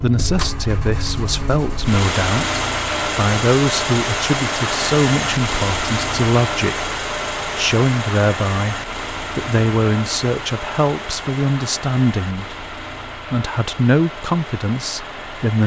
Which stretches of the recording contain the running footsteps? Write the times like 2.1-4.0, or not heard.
not heard.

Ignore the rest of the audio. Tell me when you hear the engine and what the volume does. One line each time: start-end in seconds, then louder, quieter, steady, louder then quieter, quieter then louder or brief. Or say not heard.
0.0-15.6 quieter.